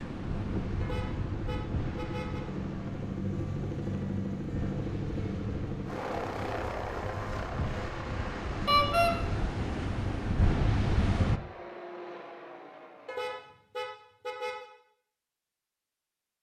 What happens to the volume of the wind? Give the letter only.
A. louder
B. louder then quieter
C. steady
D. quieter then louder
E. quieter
D.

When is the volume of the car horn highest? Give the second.
9 s.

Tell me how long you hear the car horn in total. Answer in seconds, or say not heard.
4 s.